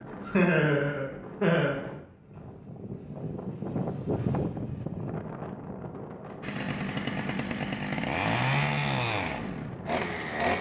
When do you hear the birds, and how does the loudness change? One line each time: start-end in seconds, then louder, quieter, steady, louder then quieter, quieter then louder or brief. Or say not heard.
not heard.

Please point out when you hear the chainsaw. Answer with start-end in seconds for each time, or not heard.
6.4-10.5.